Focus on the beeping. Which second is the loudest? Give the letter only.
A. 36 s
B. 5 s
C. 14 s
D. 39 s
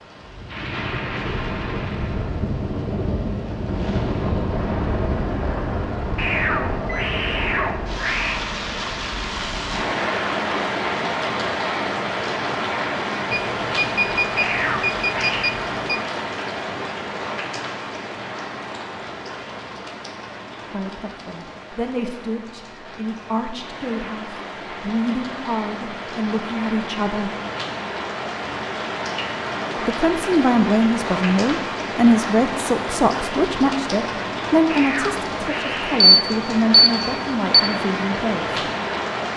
A.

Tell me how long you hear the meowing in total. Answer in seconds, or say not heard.
5 s.